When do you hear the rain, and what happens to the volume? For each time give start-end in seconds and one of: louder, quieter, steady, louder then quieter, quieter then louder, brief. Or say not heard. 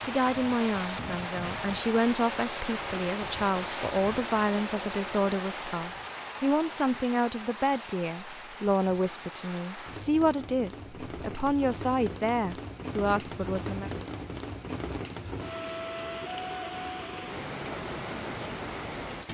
0.0-19.2 quieter then louder.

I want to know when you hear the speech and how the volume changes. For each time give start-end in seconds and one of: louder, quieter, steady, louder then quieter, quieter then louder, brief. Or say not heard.
0.0-13.9 steady.